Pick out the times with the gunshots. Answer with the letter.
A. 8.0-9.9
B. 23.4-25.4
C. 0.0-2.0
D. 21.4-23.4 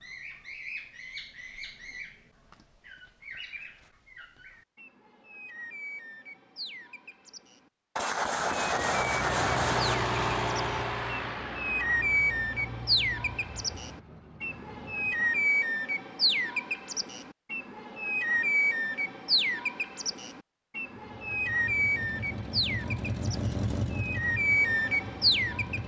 A.